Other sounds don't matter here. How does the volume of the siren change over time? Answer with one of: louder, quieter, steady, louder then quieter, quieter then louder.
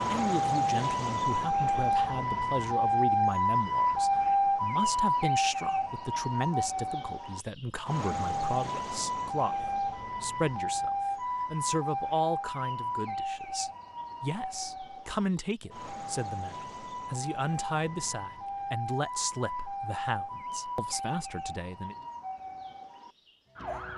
quieter.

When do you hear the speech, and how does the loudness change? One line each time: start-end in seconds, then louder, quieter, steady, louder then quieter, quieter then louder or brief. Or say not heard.
0.1-21.9 steady.